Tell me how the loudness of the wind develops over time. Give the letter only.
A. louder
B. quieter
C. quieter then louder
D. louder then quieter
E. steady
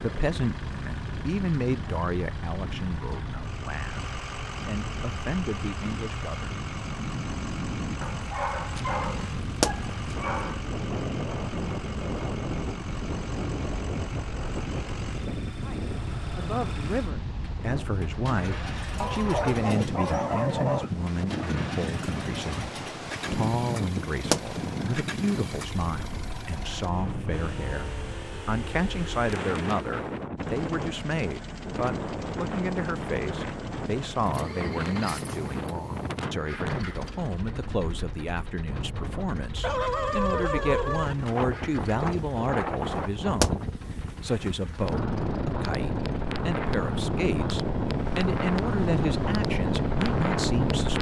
A.